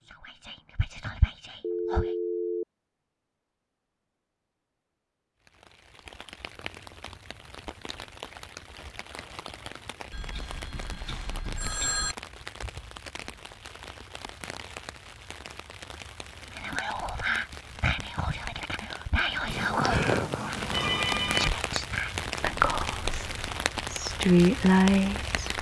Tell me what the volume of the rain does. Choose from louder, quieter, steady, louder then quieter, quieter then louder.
louder.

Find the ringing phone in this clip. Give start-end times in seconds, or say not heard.
1.6-2.6, 10.1-12.2, 19.5-21.5.